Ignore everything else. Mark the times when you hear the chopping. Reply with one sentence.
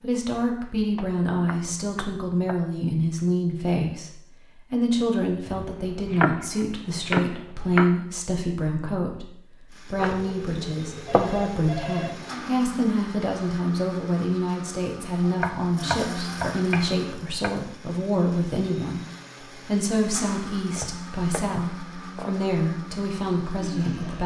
You can hear the chopping from 0.9 to 2.5 s, from 5.5 to 8.0 s, from 9.9 to 11.6 s, from 15.2 to 17.6 s and from 20.7 to 22.6 s.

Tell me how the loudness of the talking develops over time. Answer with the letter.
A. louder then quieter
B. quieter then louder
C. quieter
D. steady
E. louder
D.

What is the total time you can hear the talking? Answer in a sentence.
The talking can be heard for 24 seconds in total.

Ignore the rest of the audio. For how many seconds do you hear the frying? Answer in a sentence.
You can't hear the frying here.